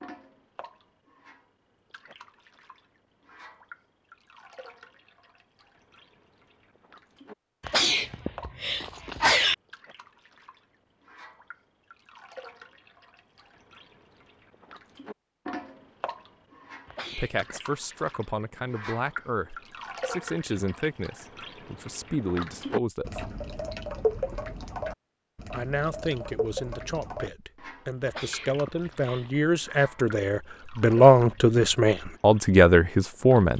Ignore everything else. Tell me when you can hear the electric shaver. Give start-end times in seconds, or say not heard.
not heard.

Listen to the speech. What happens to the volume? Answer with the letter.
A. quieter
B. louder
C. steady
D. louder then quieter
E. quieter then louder
B.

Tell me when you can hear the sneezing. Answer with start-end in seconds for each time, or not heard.
7.6-9.6, 16.9-17.4, 28.1-29.4.